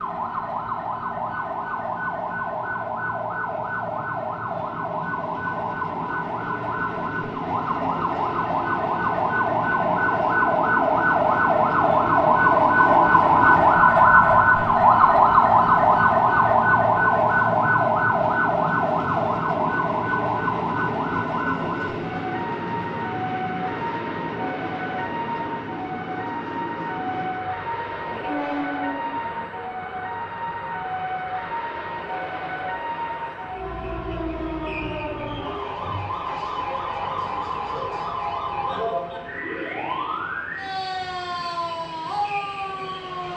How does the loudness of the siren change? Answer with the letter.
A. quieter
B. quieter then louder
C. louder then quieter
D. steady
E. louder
C.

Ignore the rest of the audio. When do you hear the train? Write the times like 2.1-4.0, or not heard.
0.0-43.3.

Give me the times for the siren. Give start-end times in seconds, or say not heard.
0.0-43.3.